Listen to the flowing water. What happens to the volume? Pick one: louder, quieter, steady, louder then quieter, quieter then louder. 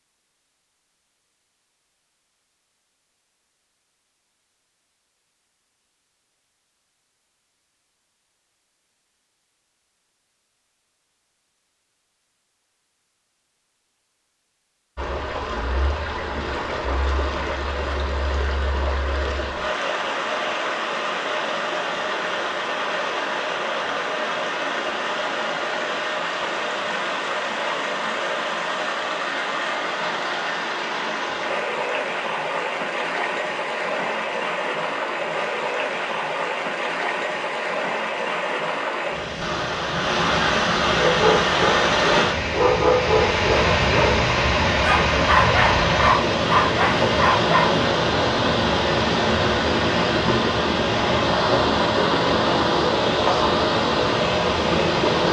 louder.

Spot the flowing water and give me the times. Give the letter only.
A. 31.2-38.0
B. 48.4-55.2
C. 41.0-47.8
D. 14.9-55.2
D.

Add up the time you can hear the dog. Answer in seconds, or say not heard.
7 s.